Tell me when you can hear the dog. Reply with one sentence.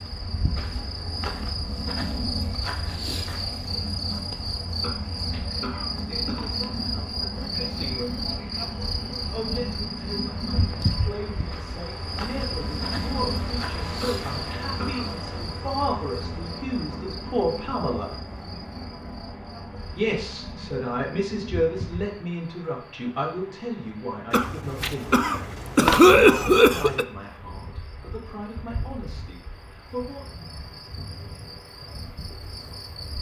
You can't hear the dog here.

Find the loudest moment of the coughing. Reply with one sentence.
The volume of the coughing peaks at 26 seconds.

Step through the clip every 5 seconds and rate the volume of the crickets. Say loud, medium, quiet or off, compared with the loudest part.
loud, loud, loud, medium, quiet, quiet, medium.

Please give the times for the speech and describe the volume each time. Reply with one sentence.
You can hear the speech briefly from 5.9 to 8.2 s; from 9.3 to 18.1 s, getting louder; and from 19.9 to 30.4 s, getting quieter.